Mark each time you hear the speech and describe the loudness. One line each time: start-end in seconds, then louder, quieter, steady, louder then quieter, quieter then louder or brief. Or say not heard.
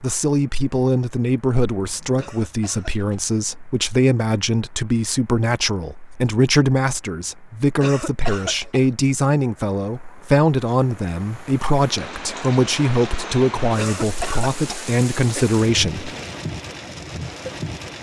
0.0-16.1 steady.